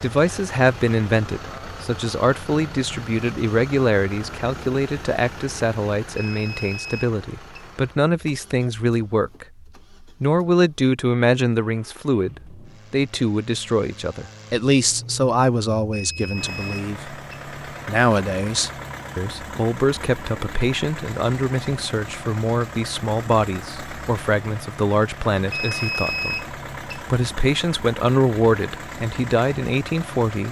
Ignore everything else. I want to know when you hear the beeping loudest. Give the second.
26 s.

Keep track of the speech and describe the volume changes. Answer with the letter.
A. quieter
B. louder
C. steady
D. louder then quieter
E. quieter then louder
C.